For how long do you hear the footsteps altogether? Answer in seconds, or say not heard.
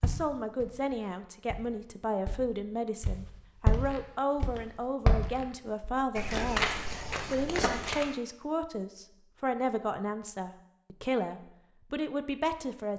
8 s.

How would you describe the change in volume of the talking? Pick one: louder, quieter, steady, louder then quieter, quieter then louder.
steady.